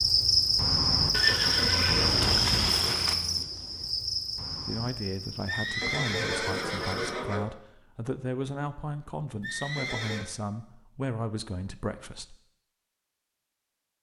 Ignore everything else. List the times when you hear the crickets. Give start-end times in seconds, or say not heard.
0.0-7.2.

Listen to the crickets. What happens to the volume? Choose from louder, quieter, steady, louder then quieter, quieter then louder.
quieter.